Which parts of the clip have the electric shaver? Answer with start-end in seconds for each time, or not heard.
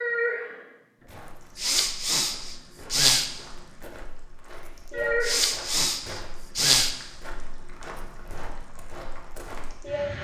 not heard.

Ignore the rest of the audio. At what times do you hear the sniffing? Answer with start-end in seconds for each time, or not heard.
1.6-3.3, 5.2-7.0.